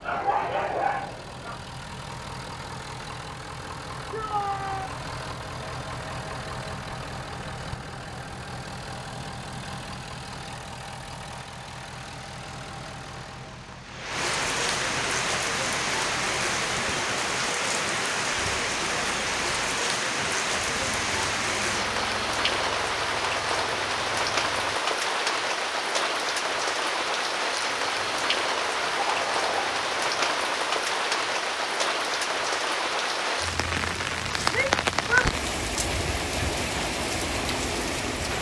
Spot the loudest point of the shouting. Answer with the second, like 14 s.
35 s.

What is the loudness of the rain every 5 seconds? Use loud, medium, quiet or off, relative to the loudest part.
quiet, quiet, medium, loud, loud, loud, loud, loud.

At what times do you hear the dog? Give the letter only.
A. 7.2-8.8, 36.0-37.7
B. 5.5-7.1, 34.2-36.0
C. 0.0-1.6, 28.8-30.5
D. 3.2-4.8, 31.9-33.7
C.